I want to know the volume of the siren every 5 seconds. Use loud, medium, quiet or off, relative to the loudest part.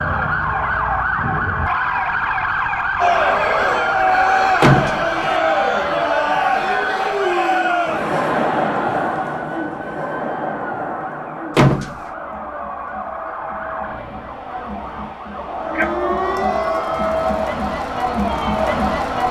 loud, medium, quiet, medium.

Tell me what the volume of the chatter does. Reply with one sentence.
The loudness of the chatter goes down, then up.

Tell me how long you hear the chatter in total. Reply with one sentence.
The chatter can be heard for 16 seconds in total.